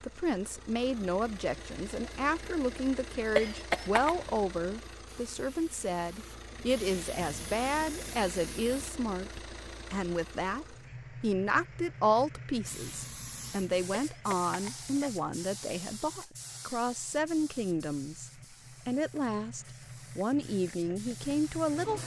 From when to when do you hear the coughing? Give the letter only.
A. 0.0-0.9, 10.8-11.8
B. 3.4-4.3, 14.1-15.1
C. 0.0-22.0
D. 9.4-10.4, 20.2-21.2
B.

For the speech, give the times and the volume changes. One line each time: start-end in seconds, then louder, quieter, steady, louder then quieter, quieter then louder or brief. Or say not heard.
0.0-22.0 steady.